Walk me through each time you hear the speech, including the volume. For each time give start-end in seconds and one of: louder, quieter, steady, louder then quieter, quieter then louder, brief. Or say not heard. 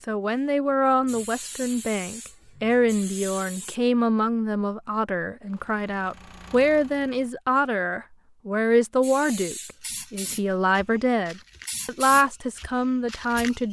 0.1-13.6 steady.